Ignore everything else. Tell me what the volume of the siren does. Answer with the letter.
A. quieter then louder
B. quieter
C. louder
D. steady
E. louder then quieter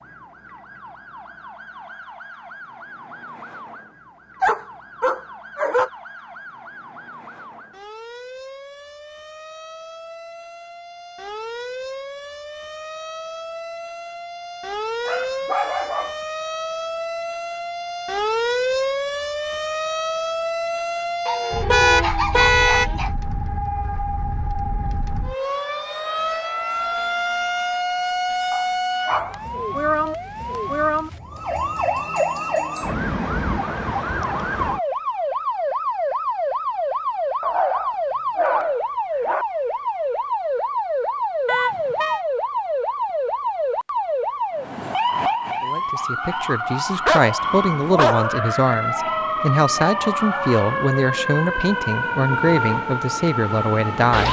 C.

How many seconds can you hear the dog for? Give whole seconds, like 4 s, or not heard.
9 s.